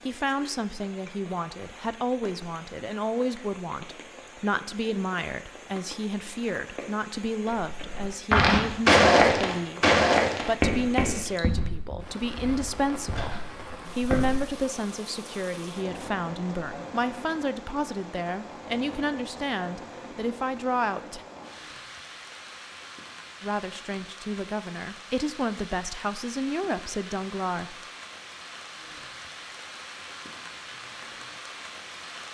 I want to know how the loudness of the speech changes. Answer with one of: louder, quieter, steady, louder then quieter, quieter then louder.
steady.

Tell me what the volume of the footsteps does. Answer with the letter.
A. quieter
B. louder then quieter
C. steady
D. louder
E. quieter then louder
E.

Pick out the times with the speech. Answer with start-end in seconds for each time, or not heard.
0.1-21.2, 23.4-27.8.